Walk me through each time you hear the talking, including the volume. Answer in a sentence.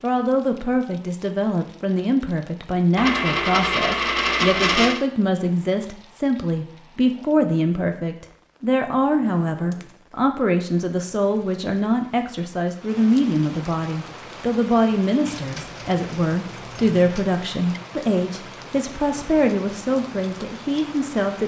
You can hear the talking from 0.0 to 21.4 s, at a steady volume.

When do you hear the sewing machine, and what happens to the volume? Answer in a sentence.
You can't hear the sewing machine here.